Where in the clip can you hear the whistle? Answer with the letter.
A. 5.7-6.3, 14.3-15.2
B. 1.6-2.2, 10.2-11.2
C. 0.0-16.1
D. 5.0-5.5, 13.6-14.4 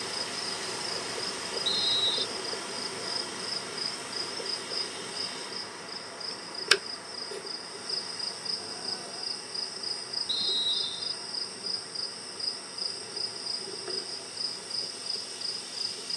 B.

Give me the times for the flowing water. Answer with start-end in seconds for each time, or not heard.
0.0-16.1.